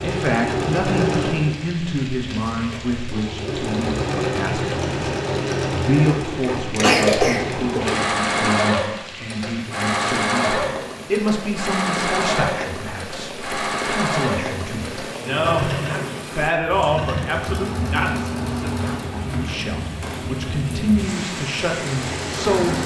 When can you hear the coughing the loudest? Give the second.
7 s.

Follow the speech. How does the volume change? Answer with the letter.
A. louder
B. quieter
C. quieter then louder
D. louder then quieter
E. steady
E.